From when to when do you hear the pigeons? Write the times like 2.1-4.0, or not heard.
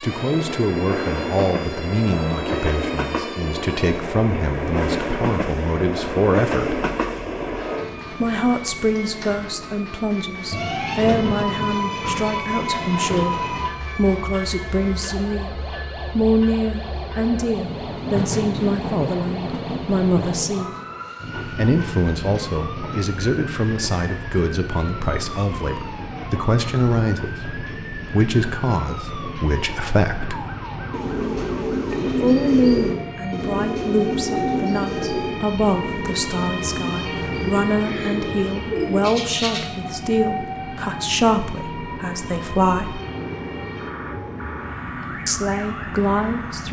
30.9-39.6.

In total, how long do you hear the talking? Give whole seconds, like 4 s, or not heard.
40 s.